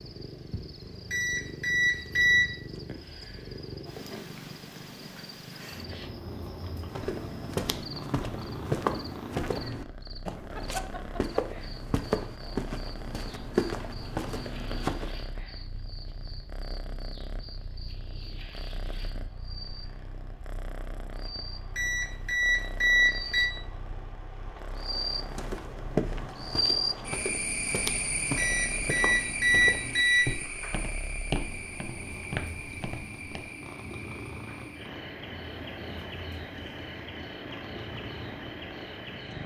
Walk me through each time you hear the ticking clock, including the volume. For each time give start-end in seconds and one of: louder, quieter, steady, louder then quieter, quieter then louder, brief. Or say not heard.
not heard.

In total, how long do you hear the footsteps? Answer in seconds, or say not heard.
17 s.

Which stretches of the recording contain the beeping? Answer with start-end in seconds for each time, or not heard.
1.1-2.5, 21.8-23.5, 28.4-30.4.